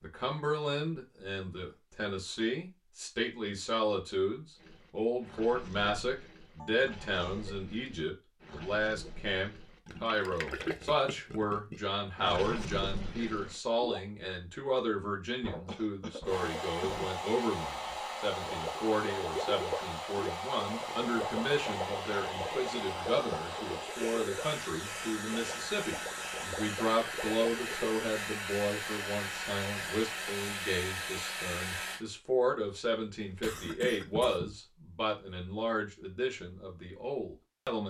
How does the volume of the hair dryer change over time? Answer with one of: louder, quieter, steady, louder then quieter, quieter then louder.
steady.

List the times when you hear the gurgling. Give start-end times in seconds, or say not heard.
4.5-14.0, 18.4-27.9.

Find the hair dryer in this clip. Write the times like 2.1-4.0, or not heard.
16.2-32.0.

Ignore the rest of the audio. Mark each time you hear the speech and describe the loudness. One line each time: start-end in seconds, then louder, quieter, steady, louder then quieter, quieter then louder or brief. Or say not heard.
0.0-37.8 steady.